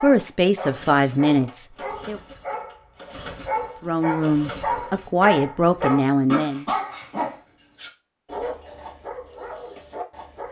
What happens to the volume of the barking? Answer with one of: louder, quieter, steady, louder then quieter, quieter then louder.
louder then quieter.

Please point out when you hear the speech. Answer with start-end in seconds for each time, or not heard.
0.0-2.2, 3.8-6.7.